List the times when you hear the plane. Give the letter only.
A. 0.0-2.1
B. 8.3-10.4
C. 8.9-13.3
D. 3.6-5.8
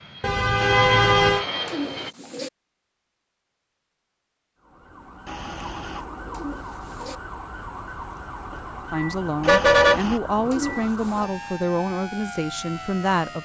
A.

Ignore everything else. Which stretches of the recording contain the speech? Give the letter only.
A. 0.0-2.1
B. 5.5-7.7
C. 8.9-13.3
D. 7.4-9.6
C.